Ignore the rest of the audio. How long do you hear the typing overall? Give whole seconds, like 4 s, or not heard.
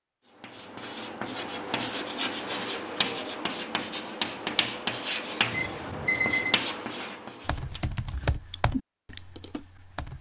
3 s.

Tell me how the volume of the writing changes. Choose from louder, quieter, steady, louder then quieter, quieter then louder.
steady.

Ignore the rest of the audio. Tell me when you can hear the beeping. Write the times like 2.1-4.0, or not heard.
5.5-6.5.